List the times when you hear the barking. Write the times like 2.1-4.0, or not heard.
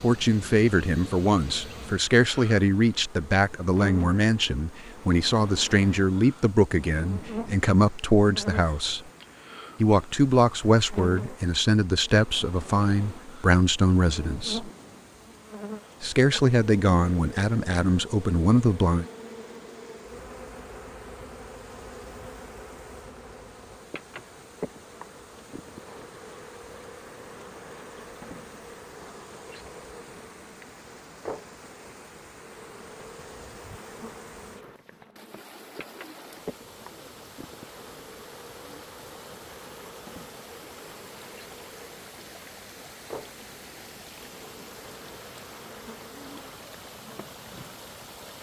not heard.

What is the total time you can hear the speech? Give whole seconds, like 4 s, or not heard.
17 s.